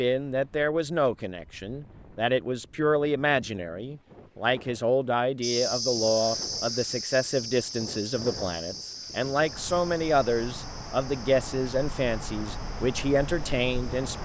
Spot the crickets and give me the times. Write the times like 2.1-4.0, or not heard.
5.4-14.1.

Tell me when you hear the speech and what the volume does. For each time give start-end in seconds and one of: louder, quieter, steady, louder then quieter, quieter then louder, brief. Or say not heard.
0.0-14.1 steady.